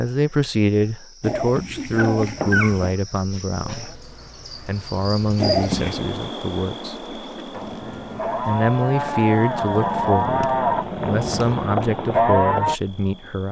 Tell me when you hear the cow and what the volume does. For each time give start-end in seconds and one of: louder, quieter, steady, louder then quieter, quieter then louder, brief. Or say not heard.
7.3-12.8 louder.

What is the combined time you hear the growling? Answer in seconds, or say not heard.
5 s.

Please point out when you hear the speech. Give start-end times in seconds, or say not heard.
0.0-7.0, 8.4-13.4.